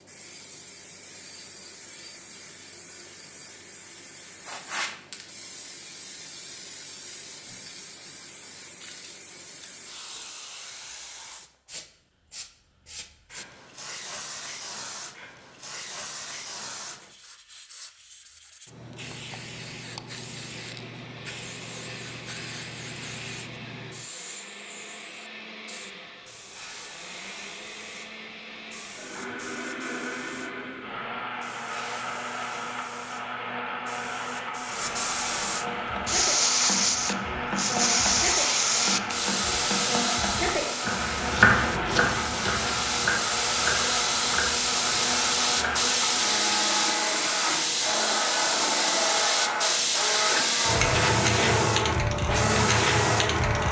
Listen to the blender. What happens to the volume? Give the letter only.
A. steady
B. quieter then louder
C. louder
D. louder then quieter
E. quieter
C.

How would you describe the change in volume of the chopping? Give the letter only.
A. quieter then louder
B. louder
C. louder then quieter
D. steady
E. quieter
C.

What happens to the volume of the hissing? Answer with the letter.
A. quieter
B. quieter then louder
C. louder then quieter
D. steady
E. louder
E.